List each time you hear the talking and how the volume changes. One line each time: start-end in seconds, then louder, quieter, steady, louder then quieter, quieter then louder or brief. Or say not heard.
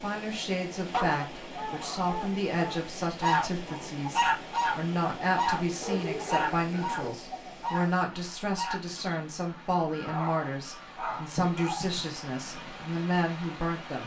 0.0-14.0 steady.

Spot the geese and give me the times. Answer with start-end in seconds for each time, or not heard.
3.2-12.9.